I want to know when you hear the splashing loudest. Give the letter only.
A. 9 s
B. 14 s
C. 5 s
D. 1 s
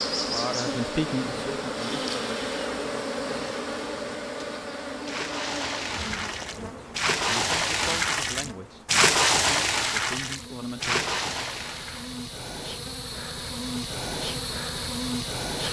A.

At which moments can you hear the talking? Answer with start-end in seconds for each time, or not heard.
0.1-2.1, 6.5-11.1.